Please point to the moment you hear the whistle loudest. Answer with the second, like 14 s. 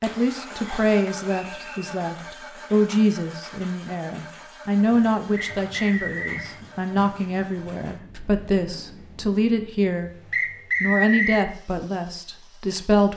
11 s.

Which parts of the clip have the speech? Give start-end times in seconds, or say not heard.
0.0-10.1, 10.8-13.1.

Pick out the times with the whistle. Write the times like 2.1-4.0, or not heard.
0.6-1.9, 5.3-6.5, 10.3-11.4.